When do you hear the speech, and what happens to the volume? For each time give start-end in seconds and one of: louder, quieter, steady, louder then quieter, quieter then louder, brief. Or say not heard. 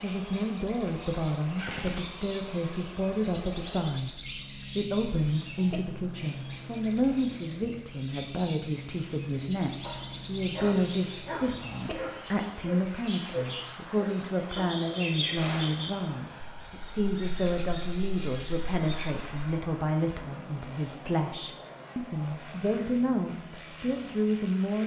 0.0-24.8 steady.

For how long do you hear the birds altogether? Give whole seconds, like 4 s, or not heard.
20 s.